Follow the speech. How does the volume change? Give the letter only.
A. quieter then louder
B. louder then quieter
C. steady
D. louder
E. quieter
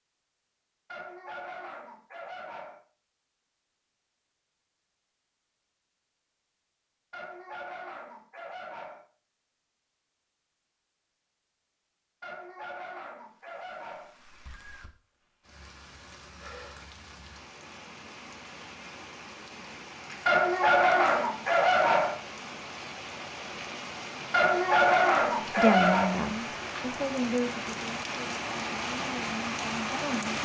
A.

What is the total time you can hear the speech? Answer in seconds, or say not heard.
5 s.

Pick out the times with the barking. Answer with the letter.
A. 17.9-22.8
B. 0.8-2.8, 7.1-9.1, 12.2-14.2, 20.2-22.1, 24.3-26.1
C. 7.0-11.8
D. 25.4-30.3
B.